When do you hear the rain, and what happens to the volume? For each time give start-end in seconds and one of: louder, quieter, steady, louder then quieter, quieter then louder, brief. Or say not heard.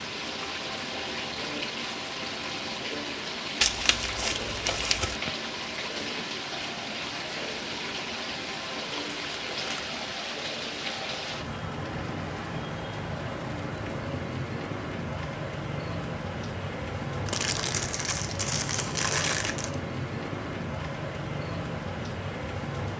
0.0-22.9 steady.